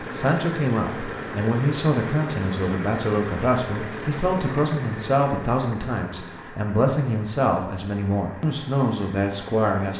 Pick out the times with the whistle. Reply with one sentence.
You can't hear the whistle here.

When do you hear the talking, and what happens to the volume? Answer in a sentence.
The talking can be heard from 0.0 to 9.9 s, at a steady volume.